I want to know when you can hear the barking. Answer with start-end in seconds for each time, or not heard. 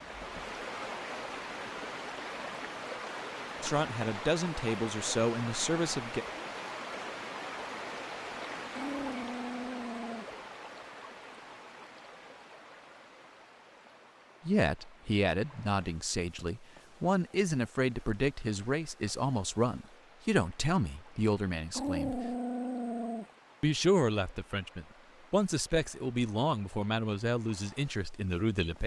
8.7-10.3, 21.7-23.3.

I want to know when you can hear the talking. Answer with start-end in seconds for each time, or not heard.
3.6-6.2, 14.4-22.4, 23.6-28.8.